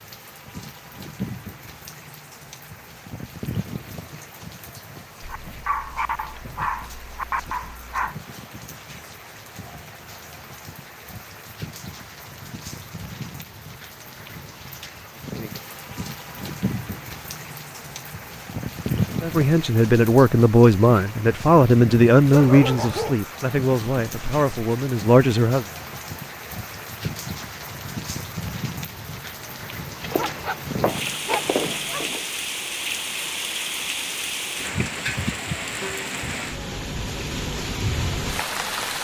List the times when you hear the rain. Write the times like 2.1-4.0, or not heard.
0.0-38.9.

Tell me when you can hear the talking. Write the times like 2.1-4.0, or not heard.
19.2-25.6.